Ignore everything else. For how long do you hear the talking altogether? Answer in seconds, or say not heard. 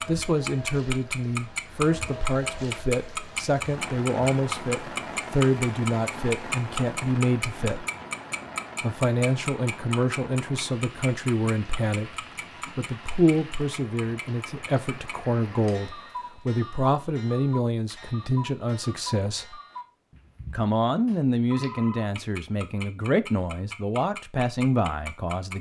23 s.